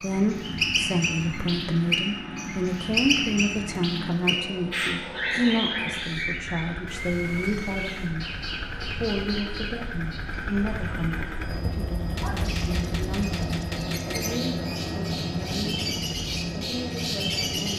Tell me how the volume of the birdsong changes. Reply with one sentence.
The loudness of the birdsong goes down, then up.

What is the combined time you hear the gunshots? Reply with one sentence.
You can hear the gunshots for 2 seconds altogether.